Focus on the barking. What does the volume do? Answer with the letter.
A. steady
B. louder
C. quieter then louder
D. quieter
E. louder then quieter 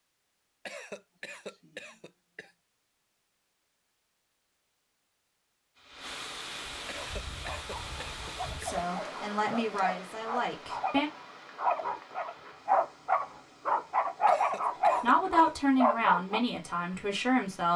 B.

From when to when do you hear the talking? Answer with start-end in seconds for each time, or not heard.
8.6-11.1, 15.0-17.7.